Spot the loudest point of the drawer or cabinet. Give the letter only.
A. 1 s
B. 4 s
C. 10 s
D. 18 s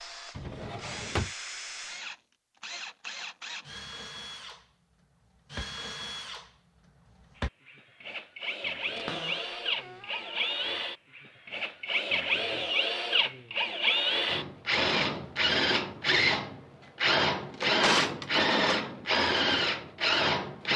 D.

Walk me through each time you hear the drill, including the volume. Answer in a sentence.
The drill can be heard from 0.0 to 20.7 s, getting louder.